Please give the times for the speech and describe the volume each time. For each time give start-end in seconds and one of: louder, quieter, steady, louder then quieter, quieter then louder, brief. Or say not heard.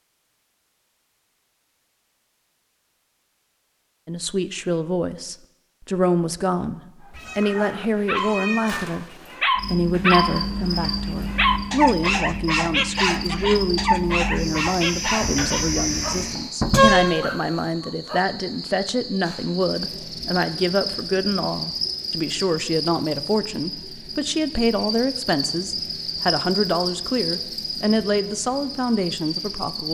4.0-29.8 steady.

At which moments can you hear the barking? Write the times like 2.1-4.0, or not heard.
7.0-18.2.